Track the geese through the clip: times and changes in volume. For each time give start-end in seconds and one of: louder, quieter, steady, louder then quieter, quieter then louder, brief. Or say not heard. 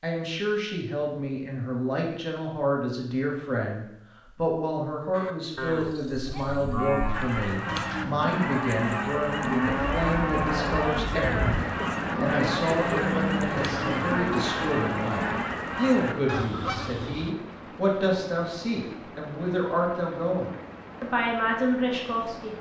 7.1-17.4 steady.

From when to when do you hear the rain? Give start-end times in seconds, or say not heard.
9.7-22.5.